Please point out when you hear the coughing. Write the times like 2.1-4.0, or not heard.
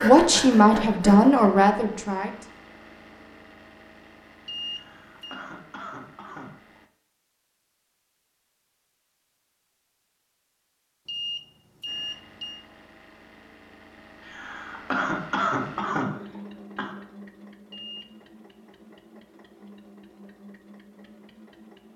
4.7-6.5, 14.2-16.9.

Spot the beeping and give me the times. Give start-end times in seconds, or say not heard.
4.5-5.4, 11.1-12.6, 17.7-18.1.